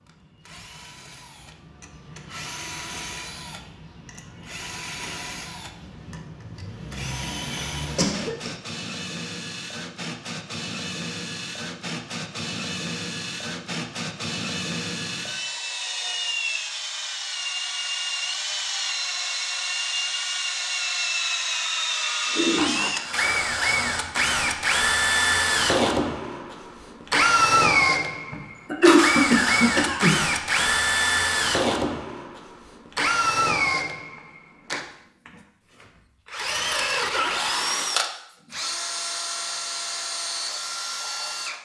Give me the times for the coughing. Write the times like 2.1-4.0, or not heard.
7.2-8.5, 22.2-23.4, 28.3-30.6.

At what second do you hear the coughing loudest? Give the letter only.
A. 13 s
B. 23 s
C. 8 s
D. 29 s
D.